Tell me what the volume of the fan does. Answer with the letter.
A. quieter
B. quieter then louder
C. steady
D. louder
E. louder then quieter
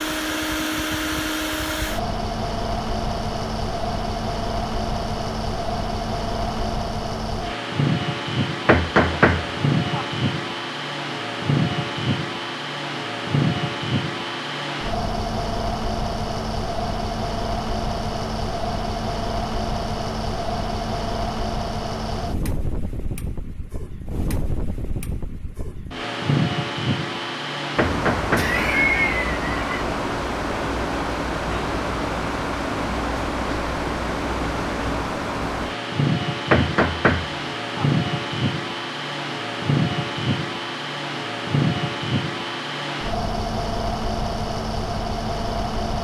C.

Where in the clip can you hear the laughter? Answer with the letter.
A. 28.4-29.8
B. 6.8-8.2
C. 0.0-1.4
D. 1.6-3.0
A.